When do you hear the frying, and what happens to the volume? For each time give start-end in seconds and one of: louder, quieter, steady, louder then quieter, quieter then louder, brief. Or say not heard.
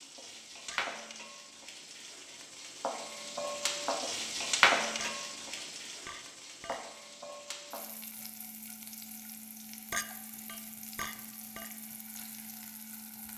0.0-13.3 louder then quieter.